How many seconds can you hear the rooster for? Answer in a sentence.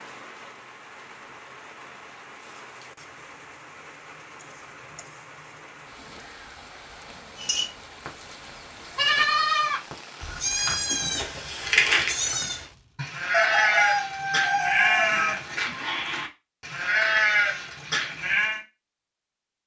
You can hear the rooster for 2 seconds altogether.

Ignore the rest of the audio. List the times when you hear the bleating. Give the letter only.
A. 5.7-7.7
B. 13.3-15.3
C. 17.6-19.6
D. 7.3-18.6
D.